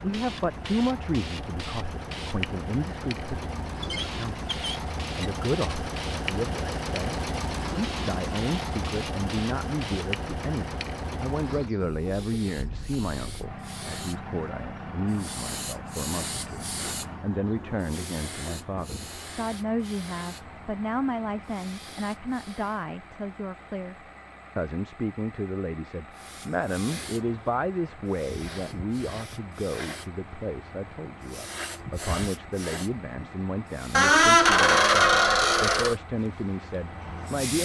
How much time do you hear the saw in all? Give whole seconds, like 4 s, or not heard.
not heard.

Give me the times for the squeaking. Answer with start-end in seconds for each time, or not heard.
3.8-5.8, 33.9-36.0.